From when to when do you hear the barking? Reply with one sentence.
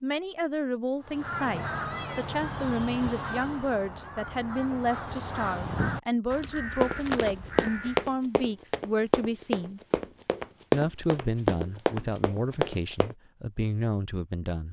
You can't hear the barking here.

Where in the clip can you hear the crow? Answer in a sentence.
The crow can be heard from 1.0 to 8.2 s.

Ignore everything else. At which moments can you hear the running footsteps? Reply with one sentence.
The running footsteps can be heard from 6.8 to 13.2 s.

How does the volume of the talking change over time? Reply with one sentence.
The loudness of the talking stays about the same.